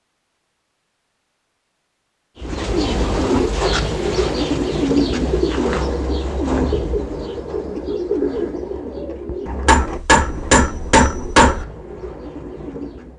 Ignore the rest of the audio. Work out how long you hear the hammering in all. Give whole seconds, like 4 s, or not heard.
2 s.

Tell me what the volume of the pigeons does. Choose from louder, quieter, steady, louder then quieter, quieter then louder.
quieter.